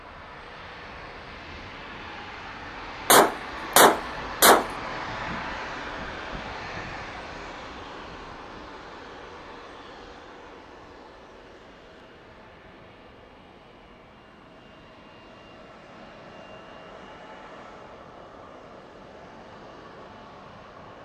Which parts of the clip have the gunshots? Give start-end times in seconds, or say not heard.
3.1-4.7.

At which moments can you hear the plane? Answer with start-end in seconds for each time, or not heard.
0.0-20.9.